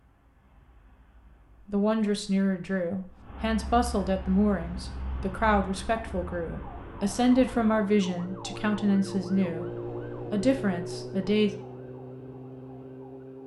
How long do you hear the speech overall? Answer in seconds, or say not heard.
9 s.